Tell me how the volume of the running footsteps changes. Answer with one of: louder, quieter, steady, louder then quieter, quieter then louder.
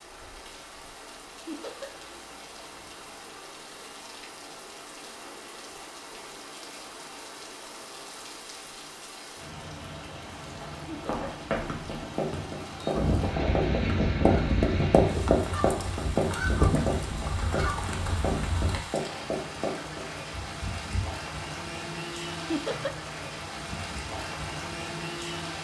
louder then quieter.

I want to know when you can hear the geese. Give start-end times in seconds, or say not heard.
12.9-18.8.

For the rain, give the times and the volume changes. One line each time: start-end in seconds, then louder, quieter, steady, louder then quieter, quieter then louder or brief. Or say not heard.
0.0-25.5 louder.